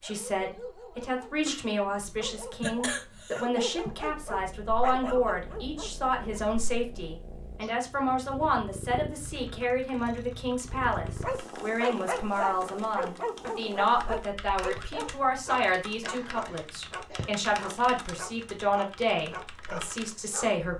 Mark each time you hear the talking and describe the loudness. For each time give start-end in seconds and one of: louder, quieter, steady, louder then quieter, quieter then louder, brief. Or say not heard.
0.0-20.7 steady.